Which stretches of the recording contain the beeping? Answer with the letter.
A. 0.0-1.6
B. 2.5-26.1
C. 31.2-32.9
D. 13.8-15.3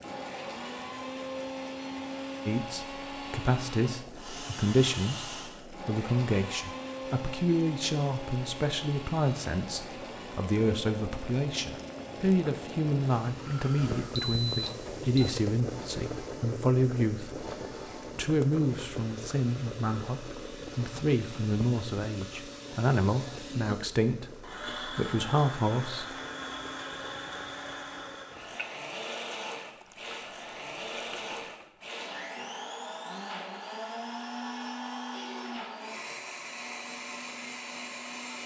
D.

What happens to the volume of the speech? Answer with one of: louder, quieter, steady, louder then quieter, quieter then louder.
steady.